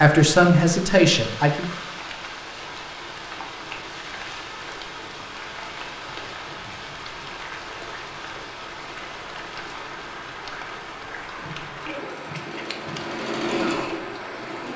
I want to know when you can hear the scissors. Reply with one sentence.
The scissors can be heard from 11.4 to 13.2 s.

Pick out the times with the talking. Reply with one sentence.
You can hear the talking from 0.0 to 1.8 s.